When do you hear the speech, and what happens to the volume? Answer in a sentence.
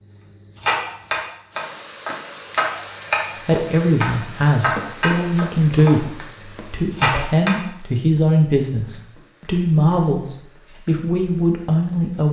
The speech can be heard from 3.5 to 12.2 s, at a steady volume.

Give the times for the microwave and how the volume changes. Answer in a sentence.
The microwave can't be heard in this clip.